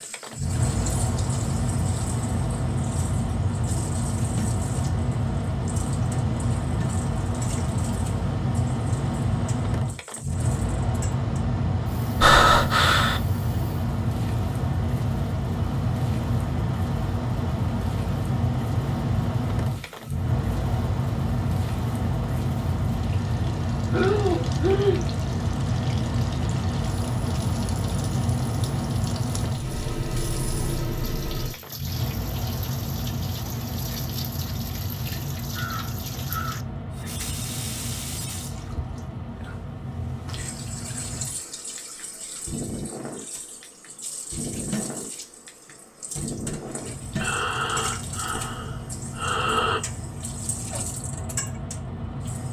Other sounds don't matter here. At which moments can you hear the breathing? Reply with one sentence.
You can hear the breathing from 12.2 to 13.2 s, from 23.9 to 25.1 s and from 47.0 to 49.8 s.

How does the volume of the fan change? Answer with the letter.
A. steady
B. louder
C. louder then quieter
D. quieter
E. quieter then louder
D.